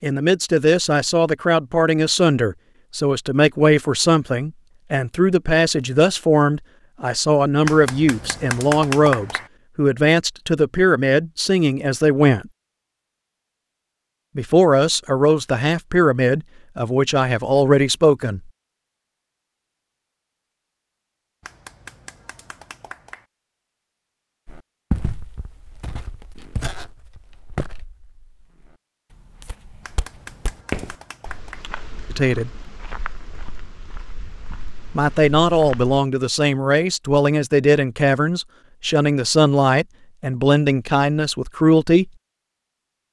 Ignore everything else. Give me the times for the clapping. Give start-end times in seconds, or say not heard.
7.7-9.5, 21.4-23.2, 29.8-31.6.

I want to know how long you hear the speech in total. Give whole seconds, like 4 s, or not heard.
24 s.